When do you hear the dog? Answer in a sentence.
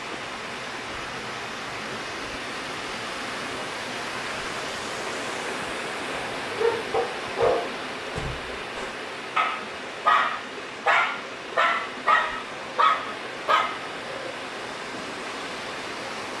You can hear the dog from 6.1 to 14.3 s.